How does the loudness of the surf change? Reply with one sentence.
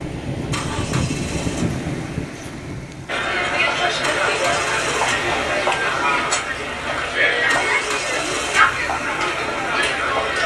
The loudness of the surf goes down.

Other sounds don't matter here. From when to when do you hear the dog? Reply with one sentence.
The dog can't be heard in this clip.